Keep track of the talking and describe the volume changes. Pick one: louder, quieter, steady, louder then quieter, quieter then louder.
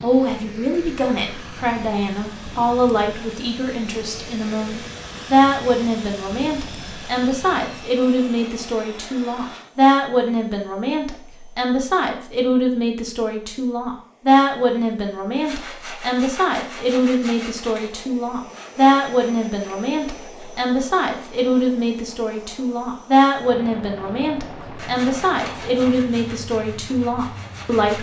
steady.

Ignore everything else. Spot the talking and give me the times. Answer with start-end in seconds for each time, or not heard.
0.0-27.9.